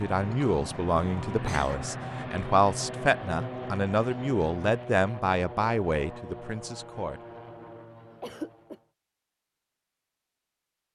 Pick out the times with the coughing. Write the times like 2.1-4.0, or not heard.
0.2-1.9, 8.2-8.8.